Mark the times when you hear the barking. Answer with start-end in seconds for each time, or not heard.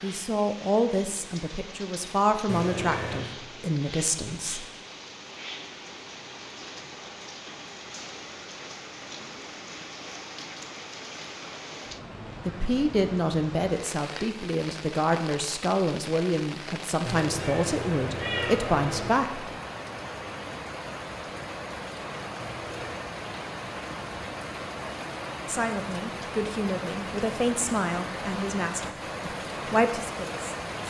not heard.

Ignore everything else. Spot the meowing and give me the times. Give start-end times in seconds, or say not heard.
2.5-3.2, 17.1-19.1, 22.4-22.9.